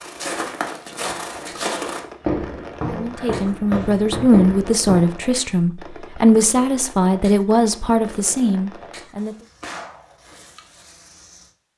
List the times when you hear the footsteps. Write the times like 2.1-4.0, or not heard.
0.0-5.2.